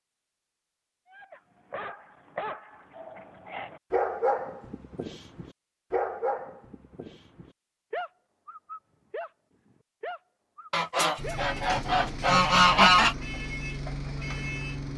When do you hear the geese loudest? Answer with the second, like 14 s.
13 s.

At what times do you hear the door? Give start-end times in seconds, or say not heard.
not heard.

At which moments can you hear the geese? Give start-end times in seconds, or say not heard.
10.7-13.2.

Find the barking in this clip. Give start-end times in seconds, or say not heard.
1.1-9.3, 10.0-11.4.